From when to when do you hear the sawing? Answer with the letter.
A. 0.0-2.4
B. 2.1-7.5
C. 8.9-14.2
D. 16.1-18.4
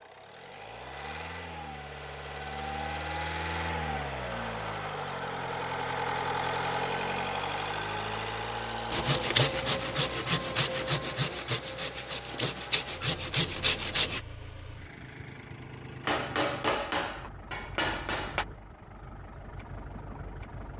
C.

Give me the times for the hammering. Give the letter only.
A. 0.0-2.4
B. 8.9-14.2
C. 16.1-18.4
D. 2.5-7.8
C.